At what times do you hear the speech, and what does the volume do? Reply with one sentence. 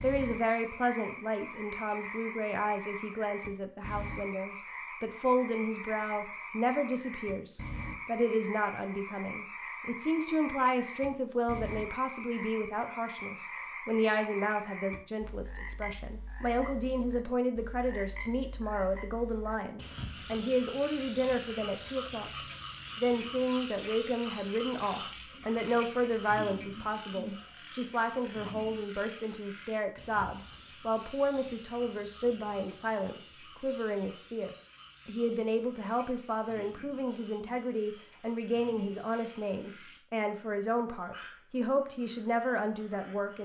You can hear the speech from 0.0 to 22.3 s, at a steady volume; and from 22.9 to 43.4 s, at a steady volume.